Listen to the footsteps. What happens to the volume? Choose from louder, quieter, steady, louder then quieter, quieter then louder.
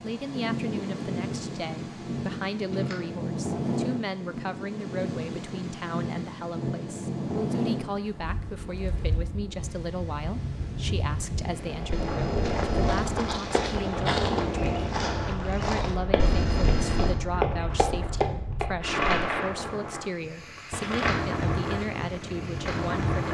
louder.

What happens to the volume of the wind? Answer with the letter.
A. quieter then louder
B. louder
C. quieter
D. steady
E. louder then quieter
D.